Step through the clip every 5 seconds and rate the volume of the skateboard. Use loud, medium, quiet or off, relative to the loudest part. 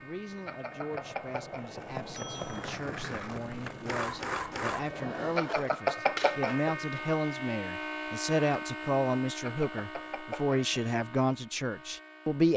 loud, loud, off.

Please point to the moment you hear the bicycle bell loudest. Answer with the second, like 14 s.
6 s.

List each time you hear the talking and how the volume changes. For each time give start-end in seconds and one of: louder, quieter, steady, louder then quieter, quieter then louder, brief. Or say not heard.
0.0-12.5 louder.